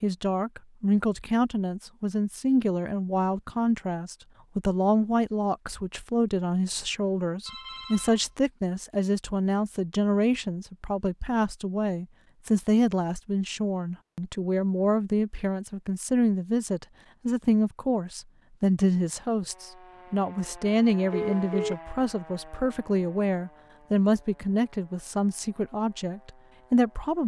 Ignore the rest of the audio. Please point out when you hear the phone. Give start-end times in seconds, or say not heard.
7.5-8.2, 21.1-21.8.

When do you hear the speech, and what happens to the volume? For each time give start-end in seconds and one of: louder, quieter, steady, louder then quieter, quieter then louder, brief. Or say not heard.
0.0-27.2 steady.